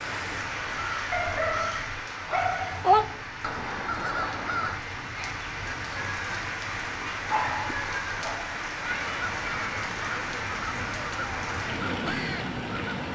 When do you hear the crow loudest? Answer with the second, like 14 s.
3 s.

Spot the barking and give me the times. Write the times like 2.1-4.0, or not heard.
1.1-2.9, 7.3-8.4.